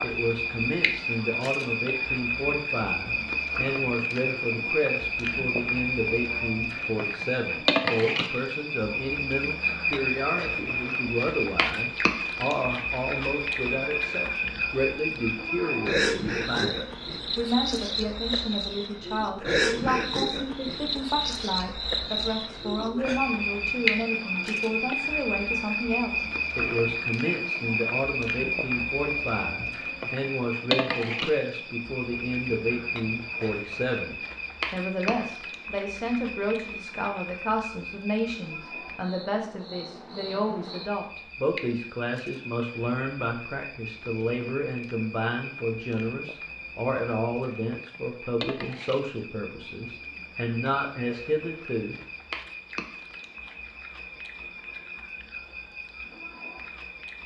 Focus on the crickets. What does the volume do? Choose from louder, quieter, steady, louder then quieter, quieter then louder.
quieter.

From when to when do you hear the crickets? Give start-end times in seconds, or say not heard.
0.0-57.2.